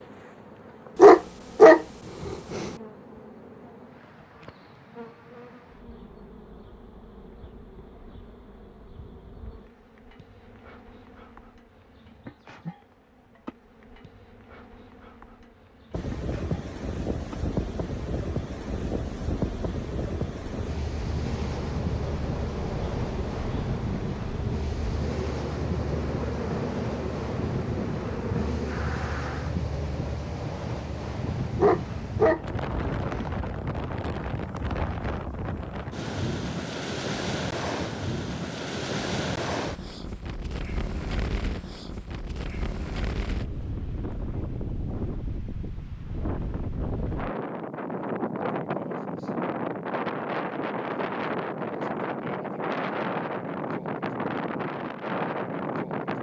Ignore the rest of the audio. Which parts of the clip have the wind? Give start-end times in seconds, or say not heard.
15.9-56.1.